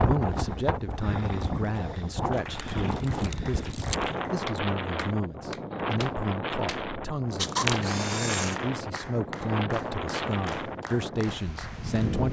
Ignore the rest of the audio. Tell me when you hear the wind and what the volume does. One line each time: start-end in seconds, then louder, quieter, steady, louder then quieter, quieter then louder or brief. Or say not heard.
0.0-12.2 steady.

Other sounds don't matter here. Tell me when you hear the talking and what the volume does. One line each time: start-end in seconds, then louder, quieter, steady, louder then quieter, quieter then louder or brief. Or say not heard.
0.0-12.2 steady.